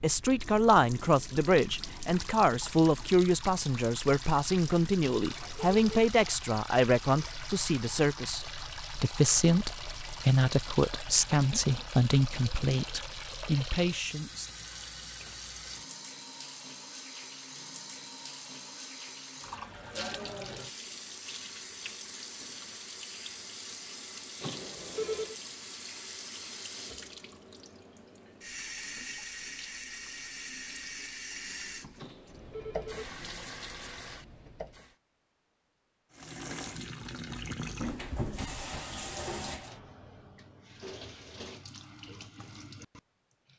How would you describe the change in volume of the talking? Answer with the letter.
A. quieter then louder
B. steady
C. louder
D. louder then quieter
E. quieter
B.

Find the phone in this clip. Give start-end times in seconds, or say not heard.
5.2-6.1, 24.4-25.4, 31.9-33.0.